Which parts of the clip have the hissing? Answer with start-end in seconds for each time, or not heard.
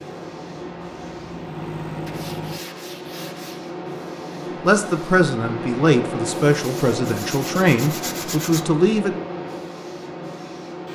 0.0-10.8.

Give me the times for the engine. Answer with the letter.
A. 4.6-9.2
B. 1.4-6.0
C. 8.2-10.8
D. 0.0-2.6
D.